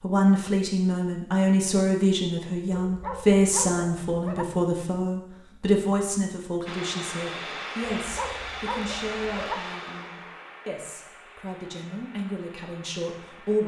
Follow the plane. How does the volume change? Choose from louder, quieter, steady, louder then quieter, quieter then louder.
quieter.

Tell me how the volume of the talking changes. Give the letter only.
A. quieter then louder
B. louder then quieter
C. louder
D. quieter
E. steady
D.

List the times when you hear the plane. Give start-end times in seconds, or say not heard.
6.7-13.6.